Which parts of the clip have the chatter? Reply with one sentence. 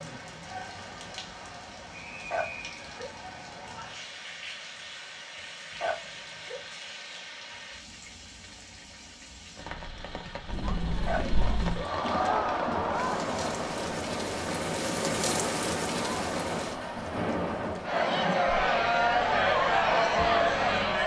You can hear the chatter from 10.4 to 21.0 s.